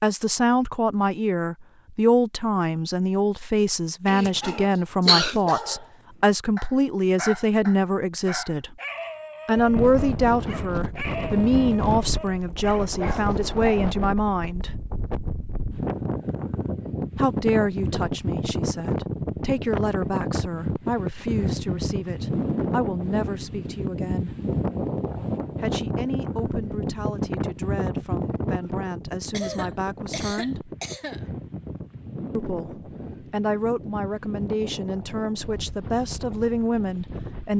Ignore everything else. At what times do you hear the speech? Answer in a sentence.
You can hear the speech from 0.0 to 8.8 s, from 9.4 to 14.7 s, from 17.1 to 24.4 s, from 25.6 to 30.7 s and from 32.4 to 37.5 s.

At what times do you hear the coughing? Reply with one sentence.
The coughing can be heard from 4.0 to 5.4 s and from 29.3 to 31.2 s.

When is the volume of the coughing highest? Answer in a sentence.
The loudest moment of the coughing is at 5 seconds.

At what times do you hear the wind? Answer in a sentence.
The wind can be heard from 9.6 to 37.5 s.